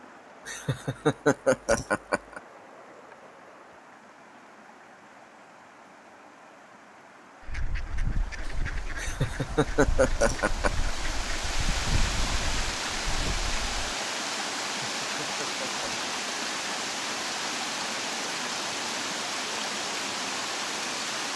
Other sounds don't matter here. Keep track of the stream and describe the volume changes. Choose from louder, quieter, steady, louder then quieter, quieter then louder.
louder.